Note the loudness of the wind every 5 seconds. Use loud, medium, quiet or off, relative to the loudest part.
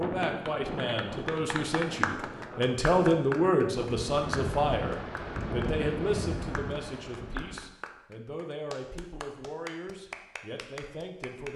loud, loud, off.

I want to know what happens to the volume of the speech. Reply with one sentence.
The loudness of the speech goes up, then down.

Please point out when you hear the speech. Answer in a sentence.
The speech can be heard from 0.0 to 11.5 s.